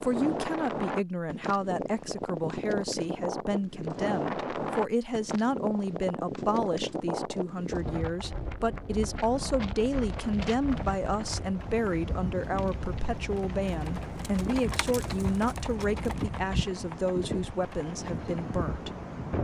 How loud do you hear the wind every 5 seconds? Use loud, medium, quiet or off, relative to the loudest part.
loud, loud, medium, loud.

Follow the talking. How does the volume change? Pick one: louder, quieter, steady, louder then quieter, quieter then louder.
steady.